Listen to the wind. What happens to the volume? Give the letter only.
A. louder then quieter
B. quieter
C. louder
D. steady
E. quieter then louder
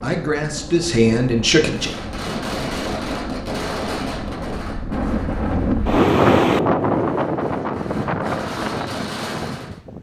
A.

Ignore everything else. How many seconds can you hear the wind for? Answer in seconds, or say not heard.
10 s.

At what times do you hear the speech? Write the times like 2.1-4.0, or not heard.
0.0-1.9.